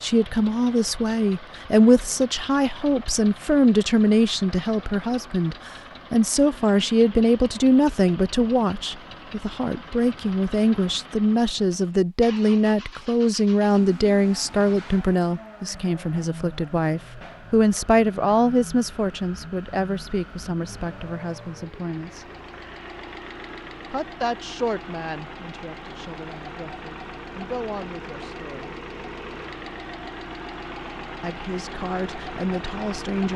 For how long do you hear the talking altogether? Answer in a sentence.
The talking can be heard for 29 seconds in total.